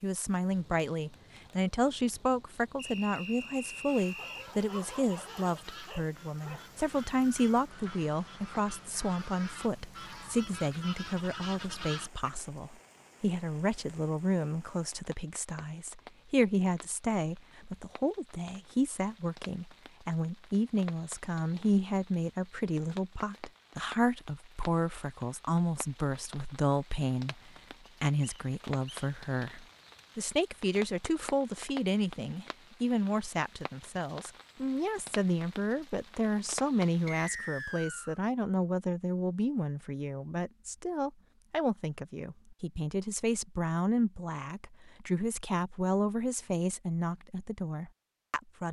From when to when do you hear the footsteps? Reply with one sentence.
The footsteps can't be heard in this clip.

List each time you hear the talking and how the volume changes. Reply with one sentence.
The talking can be heard from 0.0 to 48.6 s, at a steady volume.